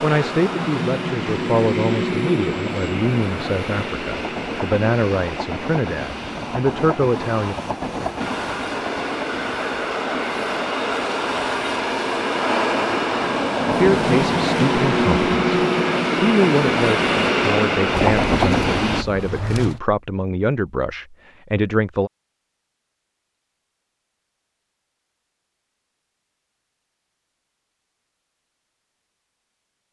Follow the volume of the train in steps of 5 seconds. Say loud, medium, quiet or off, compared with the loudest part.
medium, medium, loud, loud, off, off.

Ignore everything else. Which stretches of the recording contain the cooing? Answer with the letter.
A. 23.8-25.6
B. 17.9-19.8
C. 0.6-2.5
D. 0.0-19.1
B.